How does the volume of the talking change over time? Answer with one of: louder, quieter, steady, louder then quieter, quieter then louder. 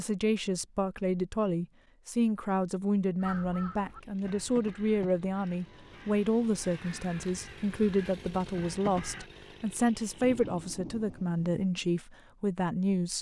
steady.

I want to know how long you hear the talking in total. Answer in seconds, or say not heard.
13 s.